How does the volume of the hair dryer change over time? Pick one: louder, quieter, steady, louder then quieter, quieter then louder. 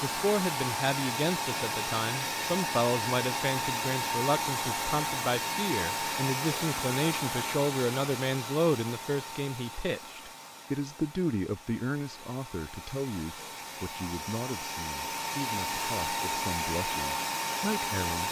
quieter then louder.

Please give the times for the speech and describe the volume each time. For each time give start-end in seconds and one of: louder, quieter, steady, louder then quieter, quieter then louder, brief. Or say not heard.
0.0-18.2 quieter.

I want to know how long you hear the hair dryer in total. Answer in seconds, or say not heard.
18 s.